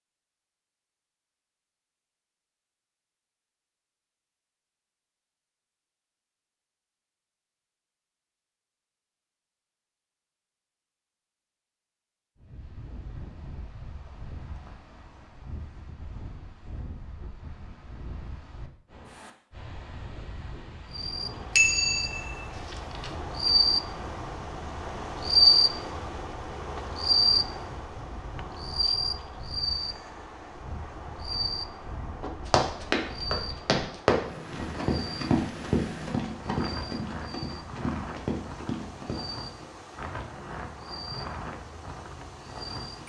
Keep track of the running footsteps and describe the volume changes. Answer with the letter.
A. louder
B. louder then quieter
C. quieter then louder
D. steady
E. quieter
E.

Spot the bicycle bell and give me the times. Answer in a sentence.
You can hear the bicycle bell from 21.6 to 23.1 s.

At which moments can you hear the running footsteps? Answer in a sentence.
The running footsteps can be heard from 32.2 to 39.4 s.